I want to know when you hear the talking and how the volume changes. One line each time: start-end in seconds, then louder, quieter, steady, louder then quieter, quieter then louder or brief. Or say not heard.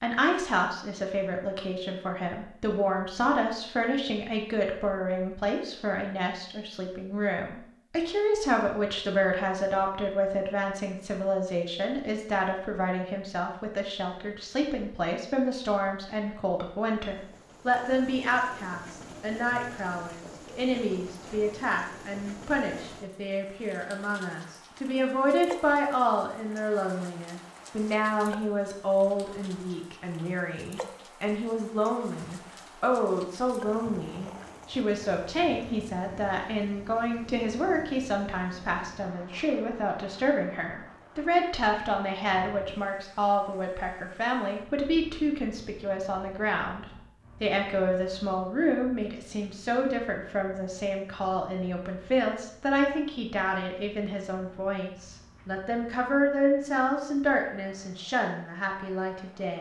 0.0-59.5 steady.